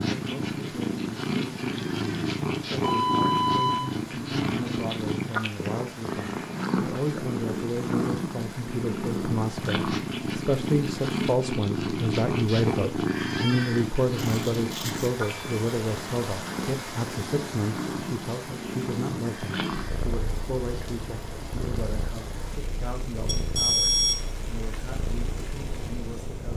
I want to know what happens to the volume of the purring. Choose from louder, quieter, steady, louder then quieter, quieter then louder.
quieter.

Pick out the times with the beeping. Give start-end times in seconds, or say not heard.
2.8-3.9, 14.2-15.3, 23.2-24.3.